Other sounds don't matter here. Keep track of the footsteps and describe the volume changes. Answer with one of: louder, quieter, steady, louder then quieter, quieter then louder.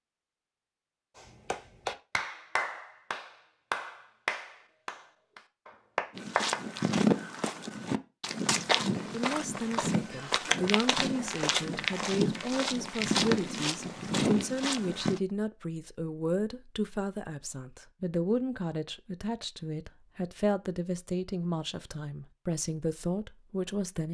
steady.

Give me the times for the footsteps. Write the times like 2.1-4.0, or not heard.
6.2-15.2.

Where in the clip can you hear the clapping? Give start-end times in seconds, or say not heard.
1.1-6.6.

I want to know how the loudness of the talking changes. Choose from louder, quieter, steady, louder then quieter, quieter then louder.
steady.